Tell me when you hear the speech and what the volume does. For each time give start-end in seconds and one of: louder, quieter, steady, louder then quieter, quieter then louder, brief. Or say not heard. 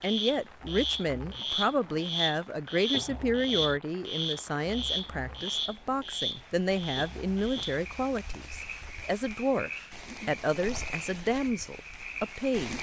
0.0-12.7 steady.